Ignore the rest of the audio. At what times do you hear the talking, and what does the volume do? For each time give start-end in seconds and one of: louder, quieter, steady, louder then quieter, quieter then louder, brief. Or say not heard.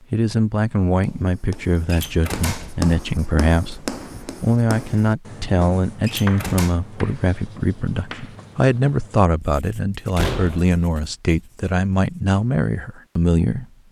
0.1-13.7 steady.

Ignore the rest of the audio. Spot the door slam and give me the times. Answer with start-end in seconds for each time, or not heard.
1.9-2.8, 6.0-6.8, 10.2-10.7.